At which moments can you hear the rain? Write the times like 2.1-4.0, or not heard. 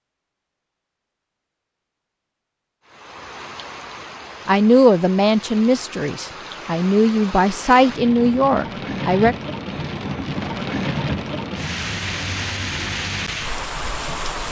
2.9-14.4.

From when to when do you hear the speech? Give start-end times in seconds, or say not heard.
4.5-9.3.